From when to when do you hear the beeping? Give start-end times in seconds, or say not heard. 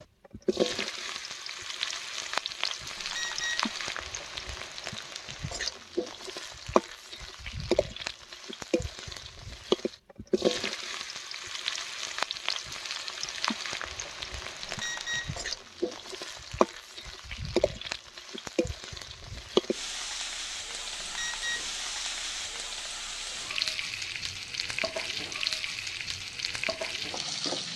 3.0-3.8, 14.6-15.4, 21.0-21.6.